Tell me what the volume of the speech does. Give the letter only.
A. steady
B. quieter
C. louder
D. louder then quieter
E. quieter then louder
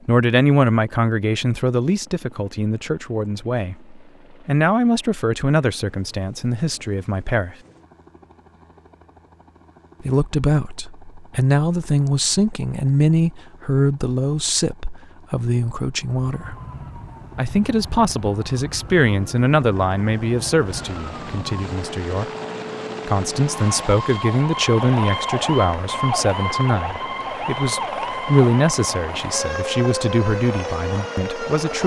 A.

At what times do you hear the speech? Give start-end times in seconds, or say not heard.
0.1-7.5, 10.0-16.6, 17.4-22.2, 23.1-31.8.